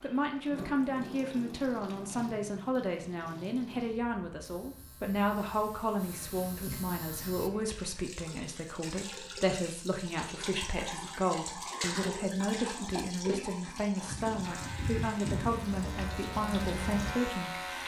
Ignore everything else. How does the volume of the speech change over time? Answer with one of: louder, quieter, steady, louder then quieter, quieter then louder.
steady.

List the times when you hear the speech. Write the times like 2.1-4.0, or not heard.
0.0-17.8.